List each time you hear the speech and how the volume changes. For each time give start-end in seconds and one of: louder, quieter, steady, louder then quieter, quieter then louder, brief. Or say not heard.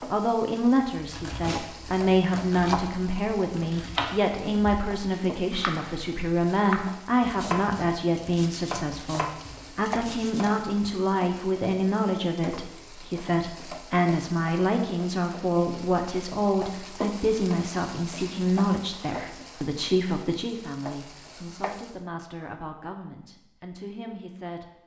0.0-24.7 quieter.